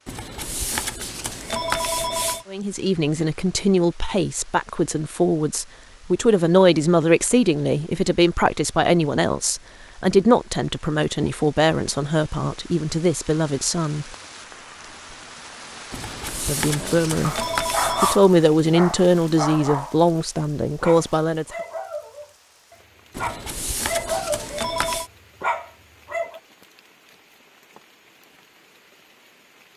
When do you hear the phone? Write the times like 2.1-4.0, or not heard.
0.1-2.5, 15.9-18.2, 23.1-25.1.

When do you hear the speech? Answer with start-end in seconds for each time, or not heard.
2.5-14.1, 16.4-21.4.